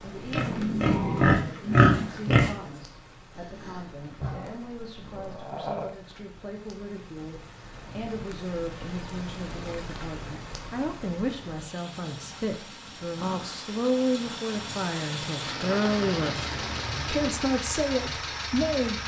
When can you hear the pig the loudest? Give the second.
2 s.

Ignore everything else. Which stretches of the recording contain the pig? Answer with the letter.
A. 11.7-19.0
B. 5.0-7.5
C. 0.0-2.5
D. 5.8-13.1
C.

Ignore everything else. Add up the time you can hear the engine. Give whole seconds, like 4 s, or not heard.
7 s.